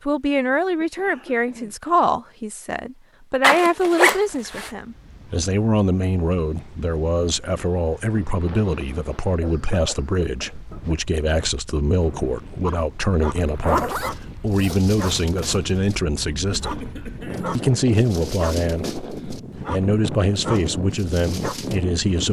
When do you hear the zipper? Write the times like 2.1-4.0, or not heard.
3.4-4.7, 13.3-15.6.